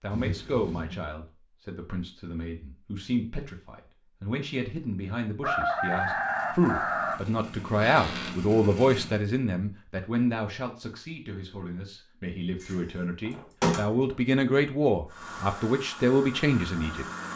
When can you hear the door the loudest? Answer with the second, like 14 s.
14 s.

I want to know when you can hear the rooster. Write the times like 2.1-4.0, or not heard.
5.4-7.2.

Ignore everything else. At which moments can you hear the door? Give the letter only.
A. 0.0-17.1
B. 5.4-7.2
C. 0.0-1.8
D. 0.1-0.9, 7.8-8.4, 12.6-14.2
D.